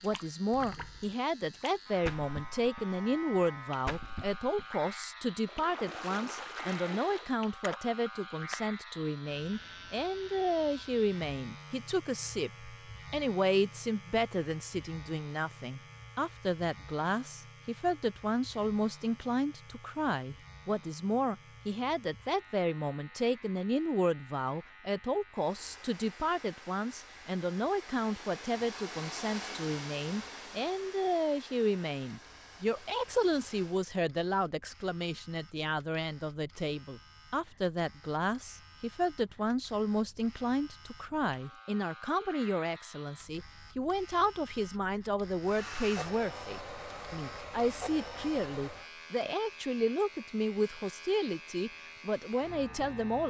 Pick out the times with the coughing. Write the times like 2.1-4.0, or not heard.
not heard.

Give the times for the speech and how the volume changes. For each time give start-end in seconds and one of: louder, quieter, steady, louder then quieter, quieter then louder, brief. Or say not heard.
0.0-53.2 steady.